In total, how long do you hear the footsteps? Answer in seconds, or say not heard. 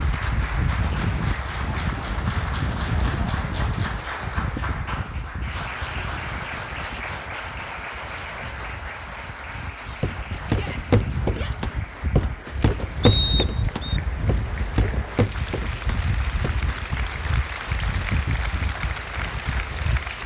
7 s.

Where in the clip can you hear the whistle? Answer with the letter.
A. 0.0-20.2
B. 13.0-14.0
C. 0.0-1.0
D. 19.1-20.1
B.